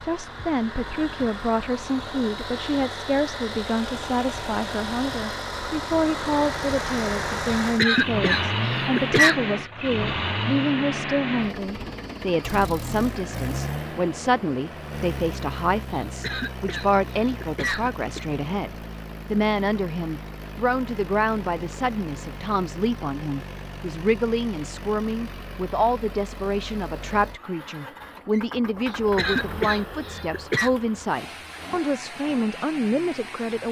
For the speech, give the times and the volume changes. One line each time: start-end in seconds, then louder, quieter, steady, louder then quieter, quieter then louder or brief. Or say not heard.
0.0-33.6 steady.